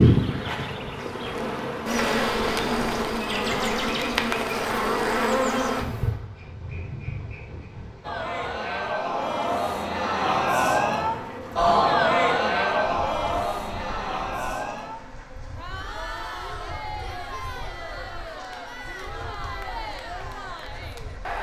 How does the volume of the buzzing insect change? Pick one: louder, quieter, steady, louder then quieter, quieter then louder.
quieter.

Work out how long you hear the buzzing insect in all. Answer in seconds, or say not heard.
21 s.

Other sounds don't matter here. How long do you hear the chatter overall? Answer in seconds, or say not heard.
13 s.